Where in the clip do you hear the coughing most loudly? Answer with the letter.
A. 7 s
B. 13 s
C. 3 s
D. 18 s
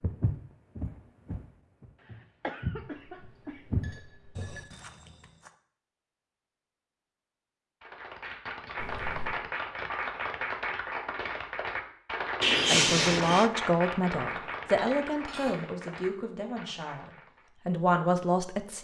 B.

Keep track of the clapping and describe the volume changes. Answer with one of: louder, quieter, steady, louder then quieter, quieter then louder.
quieter.